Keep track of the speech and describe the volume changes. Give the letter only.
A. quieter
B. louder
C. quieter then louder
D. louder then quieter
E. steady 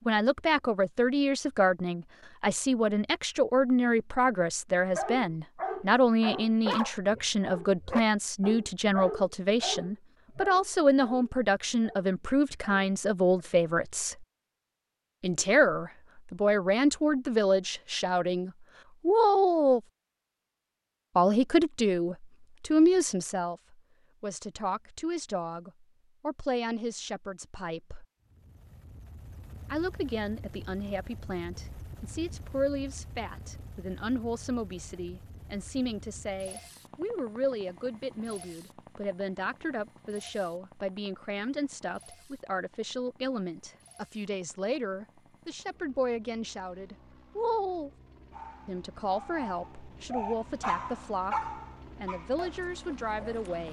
A.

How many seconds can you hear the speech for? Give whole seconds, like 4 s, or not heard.
49 s.